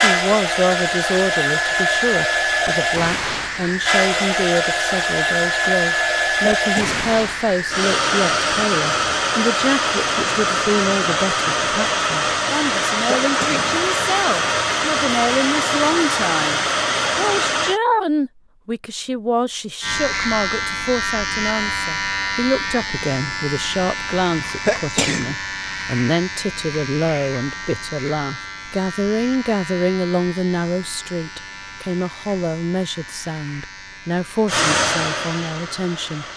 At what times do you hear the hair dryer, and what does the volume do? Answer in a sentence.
You can hear the hair dryer from 0.0 to 17.8 s, at a steady volume; and briefly from 34.5 to 36.3 s.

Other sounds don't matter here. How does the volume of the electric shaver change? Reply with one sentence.
The volume of the electric shaver goes down.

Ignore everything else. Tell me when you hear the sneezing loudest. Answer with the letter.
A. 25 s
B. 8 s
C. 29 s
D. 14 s
A.